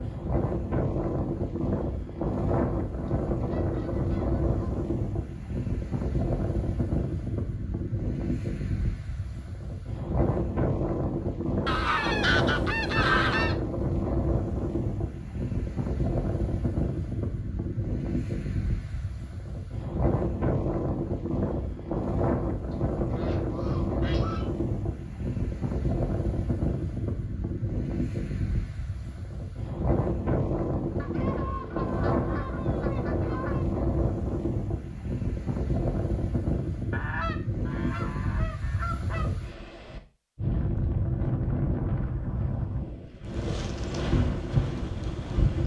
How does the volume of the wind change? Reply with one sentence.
The loudness of the wind stays about the same.